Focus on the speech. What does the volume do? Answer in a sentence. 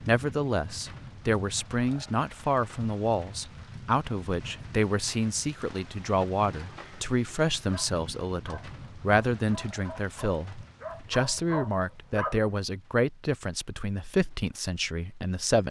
The volume of the speech stays about the same.